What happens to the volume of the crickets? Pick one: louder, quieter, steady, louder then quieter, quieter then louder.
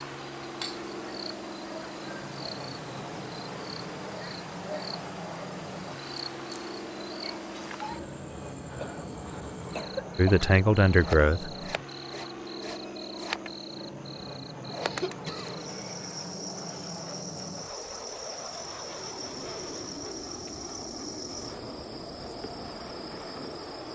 steady.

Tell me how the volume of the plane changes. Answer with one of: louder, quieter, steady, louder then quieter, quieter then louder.
steady.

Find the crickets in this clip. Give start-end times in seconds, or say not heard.
0.0-23.8.